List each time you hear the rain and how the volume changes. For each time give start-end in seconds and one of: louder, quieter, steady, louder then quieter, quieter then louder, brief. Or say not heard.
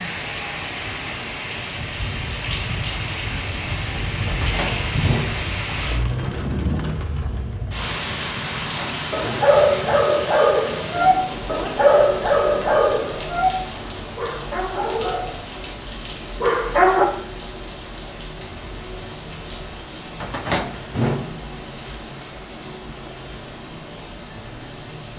0.0-25.1 quieter.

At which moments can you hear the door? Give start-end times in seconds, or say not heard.
4.2-6.0, 8.6-9.6, 20.2-21.4.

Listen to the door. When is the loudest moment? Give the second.
21 s.